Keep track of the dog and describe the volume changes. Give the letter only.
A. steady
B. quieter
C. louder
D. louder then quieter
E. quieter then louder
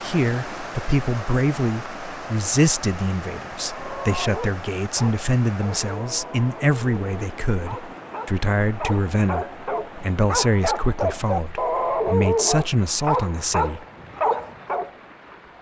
C.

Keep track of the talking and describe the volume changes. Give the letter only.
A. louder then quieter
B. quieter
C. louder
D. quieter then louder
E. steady
E.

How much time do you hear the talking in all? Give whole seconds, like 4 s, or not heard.
14 s.